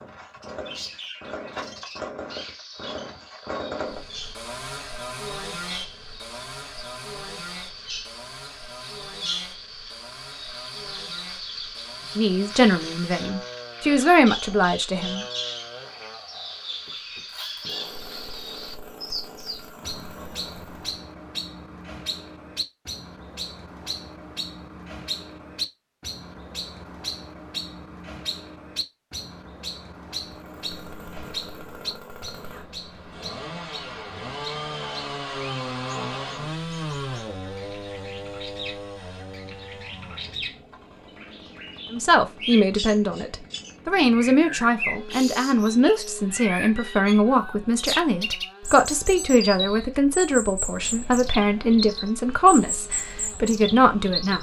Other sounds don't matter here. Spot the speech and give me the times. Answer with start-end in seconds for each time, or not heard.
12.2-15.2, 41.9-54.3.